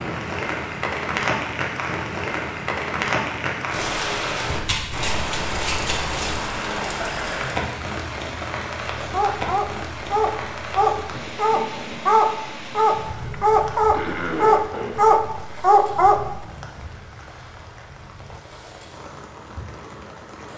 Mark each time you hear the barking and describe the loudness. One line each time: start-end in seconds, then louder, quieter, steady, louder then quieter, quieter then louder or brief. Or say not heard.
9.0-16.4 louder.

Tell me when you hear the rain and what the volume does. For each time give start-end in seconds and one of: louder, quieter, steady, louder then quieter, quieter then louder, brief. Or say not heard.
0.0-20.5 quieter.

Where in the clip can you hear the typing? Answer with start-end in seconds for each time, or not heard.
not heard.